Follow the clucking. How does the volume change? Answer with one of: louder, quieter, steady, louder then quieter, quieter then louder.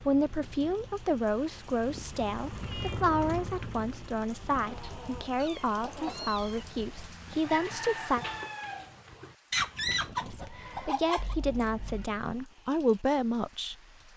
quieter then louder.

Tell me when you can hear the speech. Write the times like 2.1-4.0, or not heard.
0.0-8.2, 10.2-13.8.